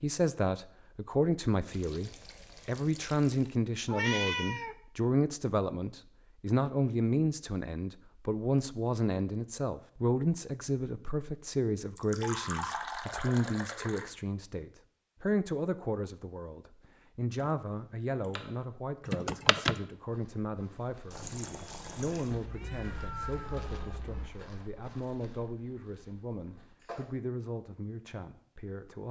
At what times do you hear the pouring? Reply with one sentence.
You can hear the pouring from 1.7 to 3.6 s, from 11.9 to 14.1 s and from 21.1 to 22.4 s.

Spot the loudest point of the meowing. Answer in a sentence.
The volume of the meowing peaks at 4 seconds.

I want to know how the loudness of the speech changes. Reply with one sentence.
The loudness of the speech goes down.